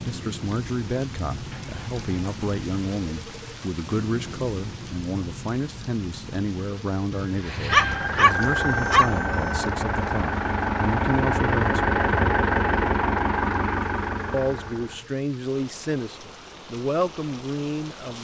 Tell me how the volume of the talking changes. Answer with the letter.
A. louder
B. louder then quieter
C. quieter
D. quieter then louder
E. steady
E.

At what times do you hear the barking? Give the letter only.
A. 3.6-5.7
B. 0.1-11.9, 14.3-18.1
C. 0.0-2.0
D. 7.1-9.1
D.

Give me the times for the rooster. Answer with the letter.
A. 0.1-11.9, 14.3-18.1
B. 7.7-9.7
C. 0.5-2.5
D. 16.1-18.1
B.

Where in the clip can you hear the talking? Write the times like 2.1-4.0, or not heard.
0.1-11.9, 14.3-18.1.